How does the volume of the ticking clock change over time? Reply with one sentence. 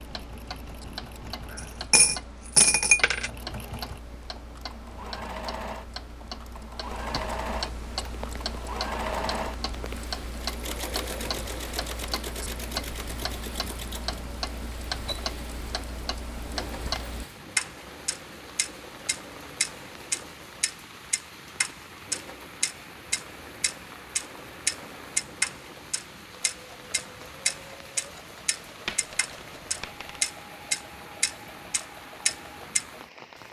The loudness of the ticking clock goes up.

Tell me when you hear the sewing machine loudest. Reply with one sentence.
The volume of the sewing machine peaks at 9 seconds.